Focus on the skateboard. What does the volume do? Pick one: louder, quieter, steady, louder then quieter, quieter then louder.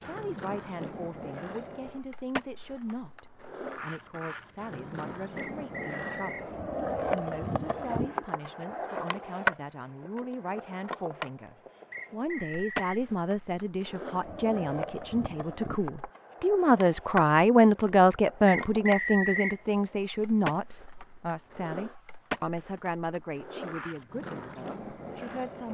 louder then quieter.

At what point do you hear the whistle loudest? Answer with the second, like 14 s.
19 s.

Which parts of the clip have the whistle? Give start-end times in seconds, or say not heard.
5.3-6.5, 11.9-12.9, 18.4-19.6.